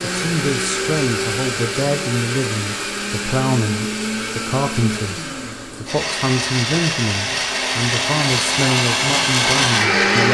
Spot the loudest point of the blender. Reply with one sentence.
The volume of the blender peaks at 10 seconds.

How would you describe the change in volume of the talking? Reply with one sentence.
The volume of the talking stays about the same.